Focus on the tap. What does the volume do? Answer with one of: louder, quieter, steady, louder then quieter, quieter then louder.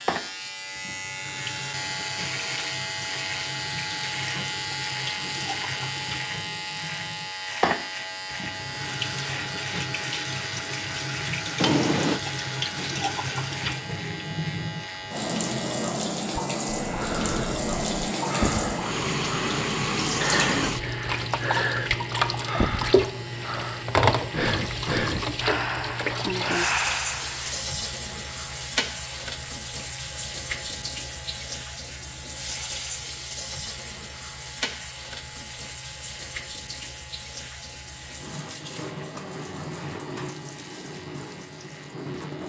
louder then quieter.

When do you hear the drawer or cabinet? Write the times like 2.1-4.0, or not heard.
11.6-12.2.